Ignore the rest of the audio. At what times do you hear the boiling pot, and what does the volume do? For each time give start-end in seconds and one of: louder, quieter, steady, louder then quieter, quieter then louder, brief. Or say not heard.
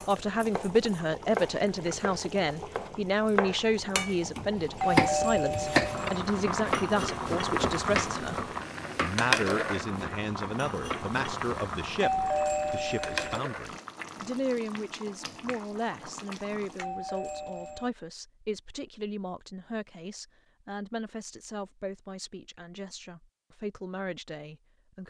0.0-16.9 louder then quieter.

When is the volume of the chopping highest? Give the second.
5 s.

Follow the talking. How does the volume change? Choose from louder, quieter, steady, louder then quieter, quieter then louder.
quieter.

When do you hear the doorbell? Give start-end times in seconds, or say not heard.
4.8-6.2, 12.0-13.4, 16.8-17.9.